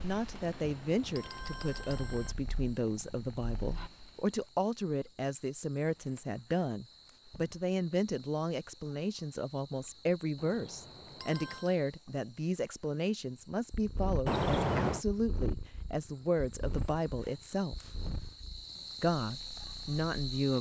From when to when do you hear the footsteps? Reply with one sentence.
The footsteps can't be heard in this clip.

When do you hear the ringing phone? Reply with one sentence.
The ringing phone can be heard from 0.3 to 2.4 s, from 10.3 to 11.8 s and from 14.2 to 15.1 s.